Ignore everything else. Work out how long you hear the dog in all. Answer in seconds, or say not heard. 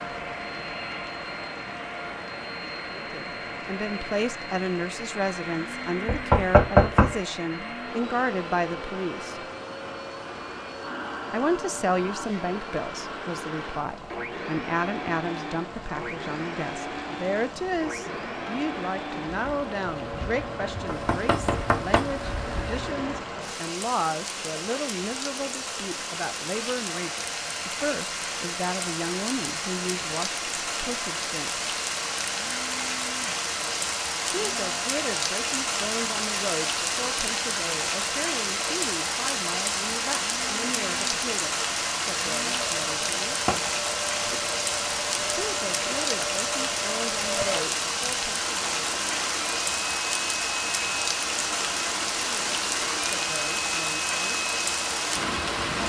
not heard.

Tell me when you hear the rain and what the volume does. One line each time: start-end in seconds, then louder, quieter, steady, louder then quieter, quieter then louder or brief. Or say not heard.
0.0-55.8 louder.